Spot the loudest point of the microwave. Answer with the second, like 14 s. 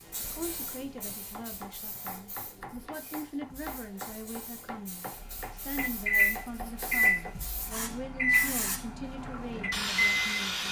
7 s.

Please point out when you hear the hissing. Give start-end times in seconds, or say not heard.
0.0-10.6.